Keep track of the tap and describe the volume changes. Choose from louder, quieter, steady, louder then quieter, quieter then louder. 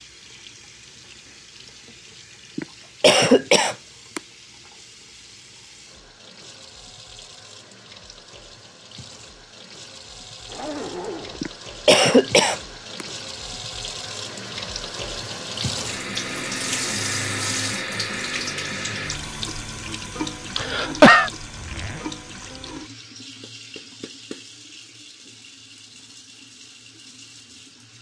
louder then quieter.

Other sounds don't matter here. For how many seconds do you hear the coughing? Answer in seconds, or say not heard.
4 s.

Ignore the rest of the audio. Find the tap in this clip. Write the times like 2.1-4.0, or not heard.
0.0-27.9.